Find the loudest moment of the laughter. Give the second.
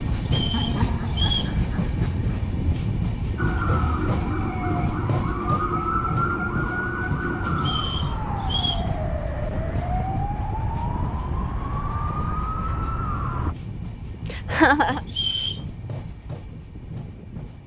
15 s.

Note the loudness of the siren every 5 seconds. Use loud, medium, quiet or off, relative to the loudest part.
loud, loud, loud, off.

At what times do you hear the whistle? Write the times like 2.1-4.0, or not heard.
0.2-1.6, 7.5-8.9, 15.1-15.7.